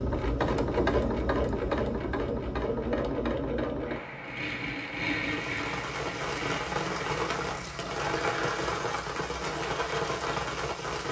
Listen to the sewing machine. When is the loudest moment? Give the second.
1 s.